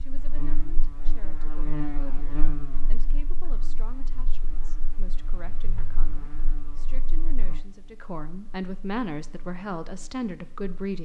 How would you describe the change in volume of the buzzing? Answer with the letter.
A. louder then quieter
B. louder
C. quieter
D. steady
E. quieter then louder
C.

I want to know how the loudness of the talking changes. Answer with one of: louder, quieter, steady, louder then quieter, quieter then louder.
louder.